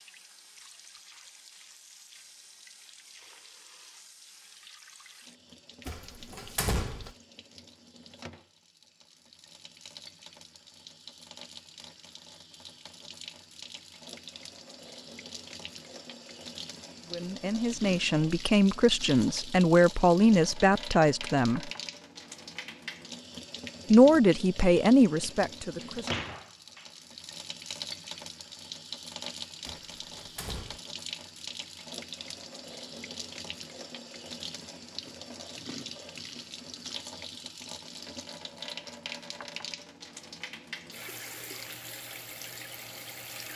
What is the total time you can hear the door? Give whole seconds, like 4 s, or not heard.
4 s.